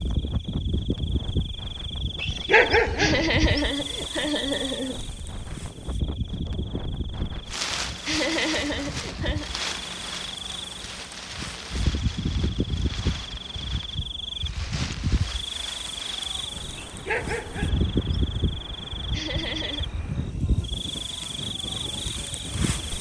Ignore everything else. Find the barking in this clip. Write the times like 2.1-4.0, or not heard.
2.2-3.4, 16.8-18.0.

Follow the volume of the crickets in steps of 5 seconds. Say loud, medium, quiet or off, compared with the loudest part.
loud, medium, loud, loud, loud.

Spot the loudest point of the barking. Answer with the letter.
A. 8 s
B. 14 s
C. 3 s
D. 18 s
C.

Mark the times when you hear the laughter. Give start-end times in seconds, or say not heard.
3.0-5.0, 8.1-9.5, 19.1-19.9.